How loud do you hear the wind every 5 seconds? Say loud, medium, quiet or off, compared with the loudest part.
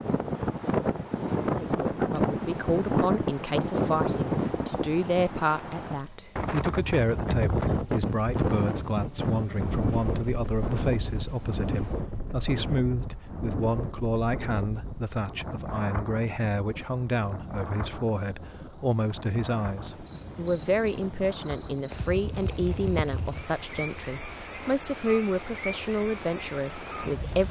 loud, loud, medium, quiet, quiet, quiet.